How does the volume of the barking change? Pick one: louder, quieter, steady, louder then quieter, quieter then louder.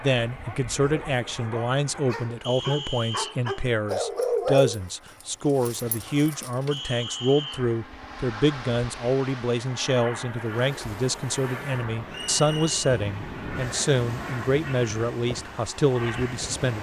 louder then quieter.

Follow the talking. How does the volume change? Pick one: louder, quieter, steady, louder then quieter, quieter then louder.
steady.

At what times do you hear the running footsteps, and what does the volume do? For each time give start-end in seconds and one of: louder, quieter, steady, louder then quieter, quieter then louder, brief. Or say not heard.
not heard.